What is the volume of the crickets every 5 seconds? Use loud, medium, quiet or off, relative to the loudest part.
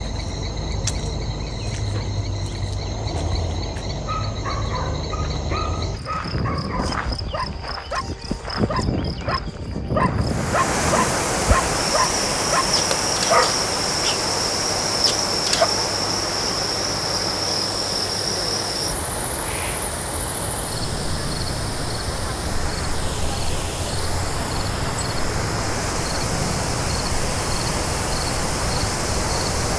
loud, loud, loud, loud, medium, loud.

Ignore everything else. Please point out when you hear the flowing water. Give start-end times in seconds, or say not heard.
10.2-29.7.